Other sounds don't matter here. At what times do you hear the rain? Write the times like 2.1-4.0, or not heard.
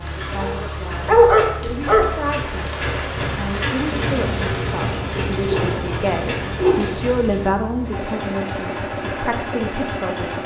0.0-7.5.